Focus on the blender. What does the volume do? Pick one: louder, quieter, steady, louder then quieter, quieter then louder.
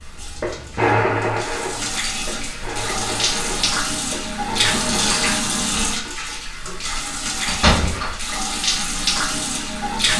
quieter.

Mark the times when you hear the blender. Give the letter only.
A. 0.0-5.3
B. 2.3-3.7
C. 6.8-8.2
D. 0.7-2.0
A.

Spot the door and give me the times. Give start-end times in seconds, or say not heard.
6.8-8.2.